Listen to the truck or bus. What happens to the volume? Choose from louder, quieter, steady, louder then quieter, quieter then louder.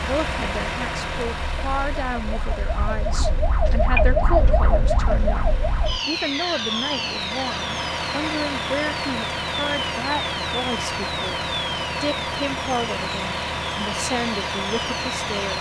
quieter then louder.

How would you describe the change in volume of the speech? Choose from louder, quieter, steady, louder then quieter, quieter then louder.
steady.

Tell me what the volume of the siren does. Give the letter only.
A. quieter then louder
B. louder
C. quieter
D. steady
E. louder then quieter
C.